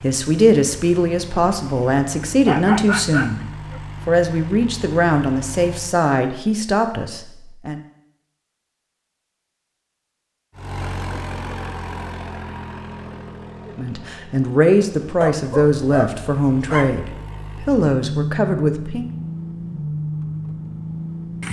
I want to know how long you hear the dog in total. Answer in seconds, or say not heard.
3 s.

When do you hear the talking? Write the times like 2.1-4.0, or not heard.
0.0-3.4, 4.0-7.8, 13.7-19.1.